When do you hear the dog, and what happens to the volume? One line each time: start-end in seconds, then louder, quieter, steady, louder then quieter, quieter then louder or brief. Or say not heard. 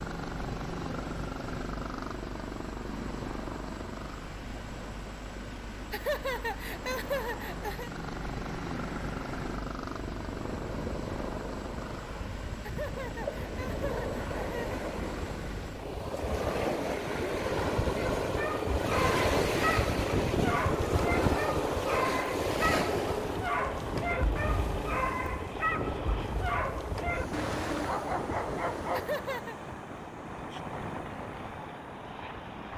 17.9-29.1 steady.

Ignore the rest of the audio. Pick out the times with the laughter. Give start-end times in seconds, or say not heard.
5.9-7.9, 12.6-14.8, 28.9-29.6.